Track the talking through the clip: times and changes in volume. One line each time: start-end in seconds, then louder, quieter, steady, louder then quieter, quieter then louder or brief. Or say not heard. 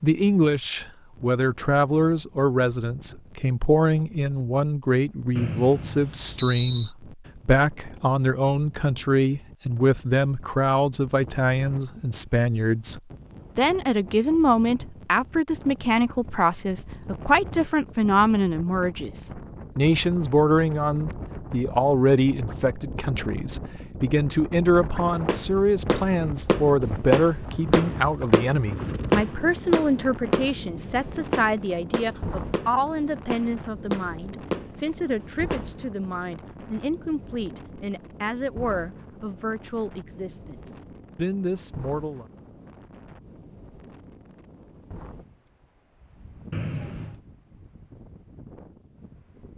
0.0-42.2 quieter.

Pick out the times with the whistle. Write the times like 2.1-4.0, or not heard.
5.3-6.9, 46.5-47.2.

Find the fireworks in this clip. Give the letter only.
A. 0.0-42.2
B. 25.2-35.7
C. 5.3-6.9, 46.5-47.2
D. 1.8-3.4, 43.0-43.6
B.